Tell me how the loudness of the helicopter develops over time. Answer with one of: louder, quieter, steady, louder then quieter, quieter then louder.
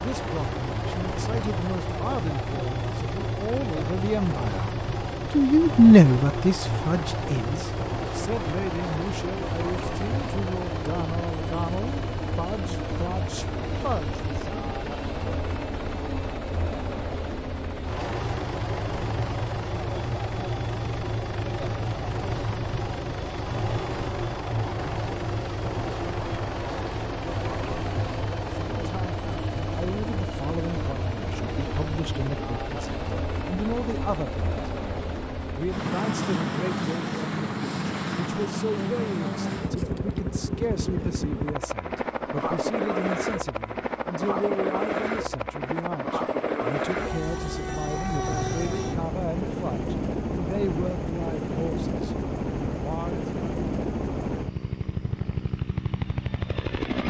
steady.